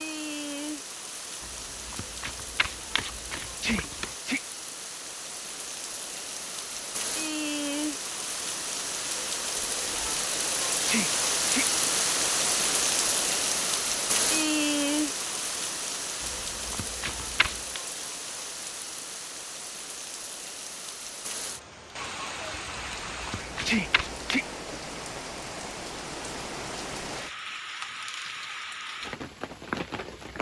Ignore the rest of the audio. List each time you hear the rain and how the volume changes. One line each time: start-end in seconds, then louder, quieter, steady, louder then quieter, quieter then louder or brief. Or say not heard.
0.0-30.3 louder then quieter.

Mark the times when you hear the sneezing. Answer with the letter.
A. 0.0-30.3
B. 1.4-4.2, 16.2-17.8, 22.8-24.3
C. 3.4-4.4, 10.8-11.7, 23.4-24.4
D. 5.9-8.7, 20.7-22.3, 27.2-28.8
C.